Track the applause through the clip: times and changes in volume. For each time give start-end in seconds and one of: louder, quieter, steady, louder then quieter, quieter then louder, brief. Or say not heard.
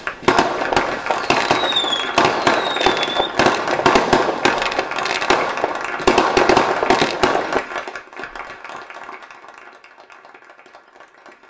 0.0-11.4 quieter.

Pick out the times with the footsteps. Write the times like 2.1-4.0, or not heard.
not heard.